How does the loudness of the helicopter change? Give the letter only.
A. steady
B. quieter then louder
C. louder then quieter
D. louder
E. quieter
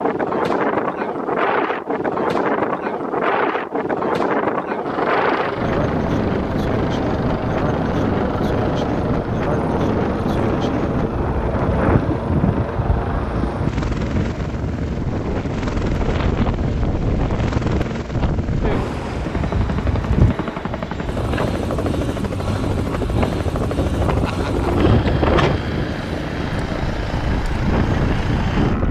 A.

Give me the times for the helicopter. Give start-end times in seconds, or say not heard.
4.8-28.8.